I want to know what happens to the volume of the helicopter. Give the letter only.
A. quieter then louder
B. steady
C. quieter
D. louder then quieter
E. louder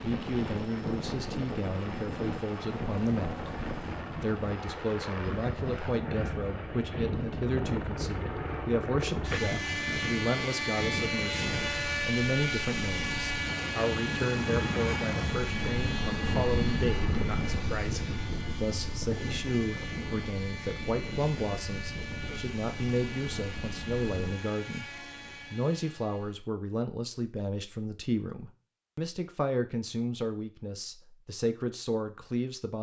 D.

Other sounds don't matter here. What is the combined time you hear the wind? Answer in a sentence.
You can hear the wind for 24 seconds altogether.